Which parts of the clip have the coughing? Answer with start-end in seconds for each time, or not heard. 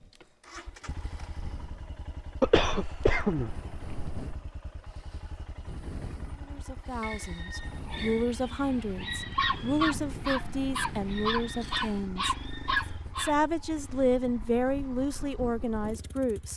2.4-4.3.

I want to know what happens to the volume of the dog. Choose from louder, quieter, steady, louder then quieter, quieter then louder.
louder.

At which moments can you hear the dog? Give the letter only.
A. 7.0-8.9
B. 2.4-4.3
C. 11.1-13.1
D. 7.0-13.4
D.